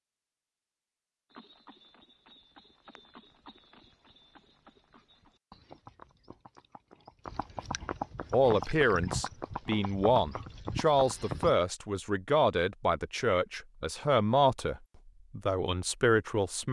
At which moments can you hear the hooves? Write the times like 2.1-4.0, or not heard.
1.3-11.5.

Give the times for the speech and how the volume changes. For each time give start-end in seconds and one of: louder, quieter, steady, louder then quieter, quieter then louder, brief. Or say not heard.
8.3-16.6 steady.